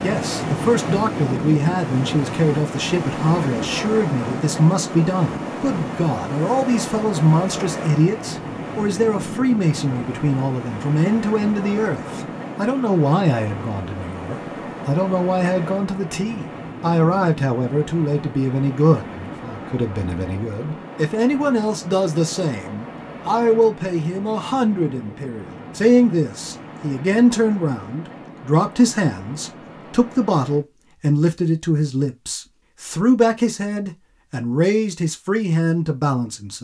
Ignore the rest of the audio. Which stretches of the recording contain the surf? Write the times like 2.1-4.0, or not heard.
0.0-30.6.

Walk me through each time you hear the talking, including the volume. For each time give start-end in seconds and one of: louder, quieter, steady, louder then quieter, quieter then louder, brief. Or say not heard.
0.0-36.5 steady.